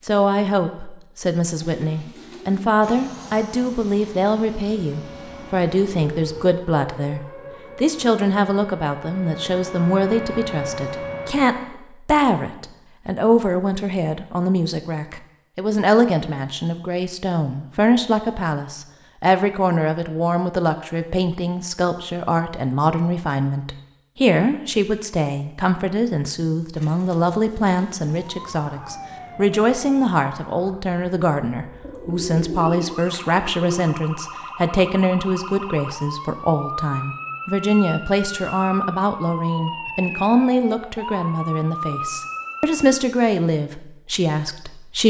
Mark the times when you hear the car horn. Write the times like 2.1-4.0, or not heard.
not heard.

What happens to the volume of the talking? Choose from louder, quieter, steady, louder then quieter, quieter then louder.
steady.